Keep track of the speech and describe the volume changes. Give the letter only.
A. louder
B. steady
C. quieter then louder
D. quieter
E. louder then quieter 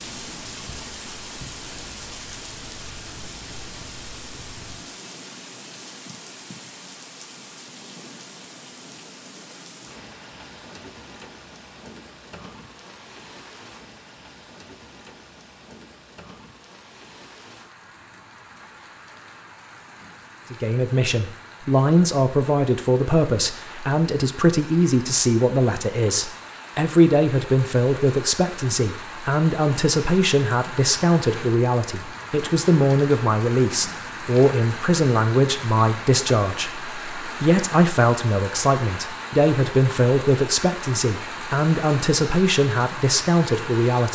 B.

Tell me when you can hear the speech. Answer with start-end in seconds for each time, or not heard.
20.5-44.0.